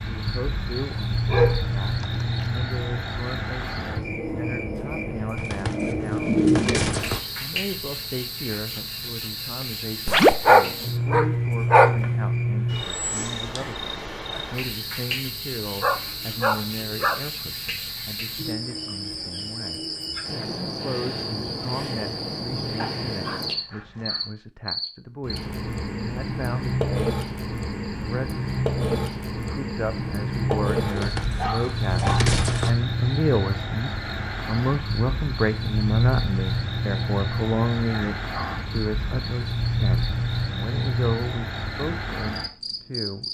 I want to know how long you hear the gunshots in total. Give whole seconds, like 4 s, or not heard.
4 s.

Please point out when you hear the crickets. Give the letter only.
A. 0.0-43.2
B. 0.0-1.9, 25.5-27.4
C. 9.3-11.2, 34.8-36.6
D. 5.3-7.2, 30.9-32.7
A.